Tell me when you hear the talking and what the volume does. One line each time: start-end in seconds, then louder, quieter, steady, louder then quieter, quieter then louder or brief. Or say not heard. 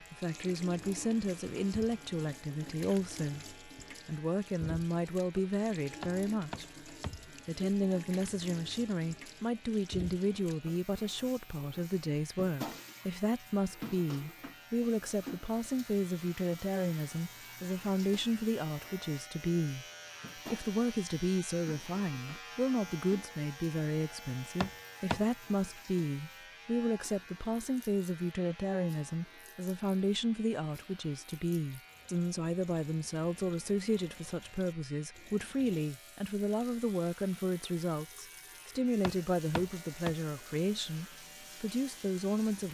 0.1-6.7 steady
7.5-42.6 steady.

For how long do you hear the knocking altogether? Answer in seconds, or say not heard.
3 s.